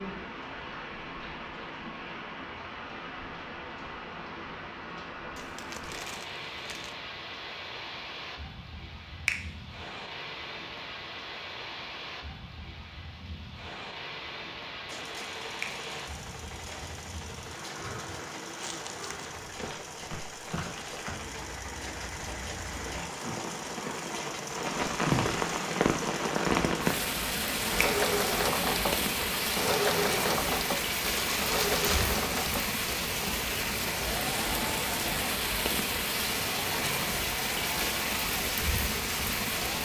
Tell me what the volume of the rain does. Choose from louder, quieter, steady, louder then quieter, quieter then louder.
louder.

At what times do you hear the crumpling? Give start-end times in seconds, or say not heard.
5.3-7.0, 18.6-19.3, 31.1-32.1.